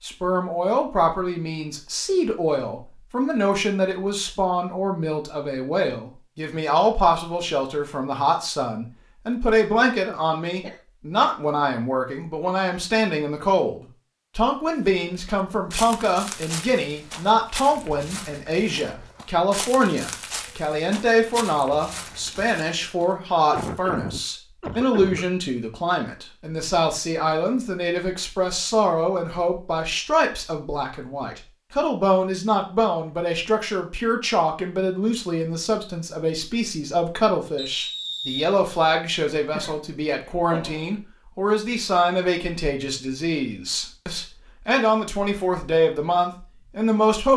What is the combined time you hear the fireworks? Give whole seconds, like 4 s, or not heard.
not heard.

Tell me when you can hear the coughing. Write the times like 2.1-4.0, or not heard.
9.8-10.8, 23.5-25.2, 39.4-41.0.